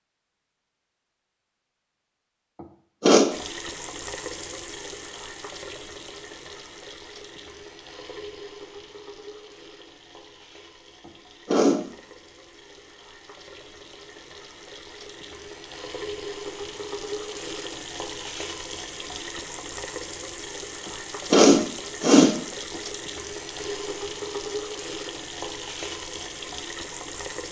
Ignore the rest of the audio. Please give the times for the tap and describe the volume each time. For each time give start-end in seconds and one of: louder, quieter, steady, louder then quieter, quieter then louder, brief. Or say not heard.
3.3-27.4 quieter then louder.